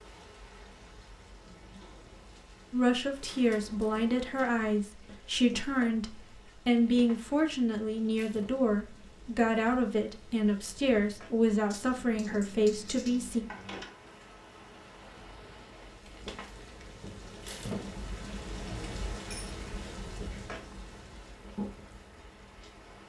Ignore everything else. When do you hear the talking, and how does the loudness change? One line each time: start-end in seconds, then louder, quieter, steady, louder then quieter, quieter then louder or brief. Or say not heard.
2.7-13.4 steady.